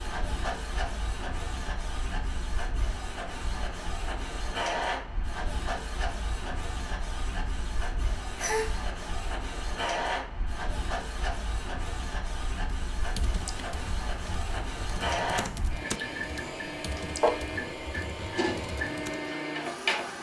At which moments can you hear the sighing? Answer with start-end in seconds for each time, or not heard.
8.3-8.8.